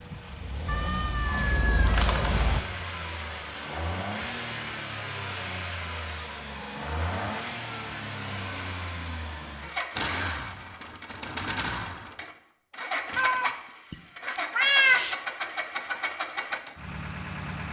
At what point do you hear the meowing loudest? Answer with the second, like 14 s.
15 s.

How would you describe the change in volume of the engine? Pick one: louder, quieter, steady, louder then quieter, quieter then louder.
steady.